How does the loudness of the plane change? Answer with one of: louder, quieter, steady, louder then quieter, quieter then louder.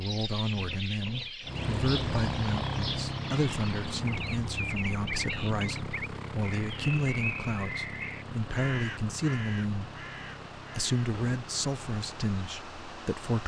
quieter.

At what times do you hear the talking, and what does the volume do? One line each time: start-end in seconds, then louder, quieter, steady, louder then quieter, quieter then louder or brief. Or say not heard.
0.0-13.4 steady.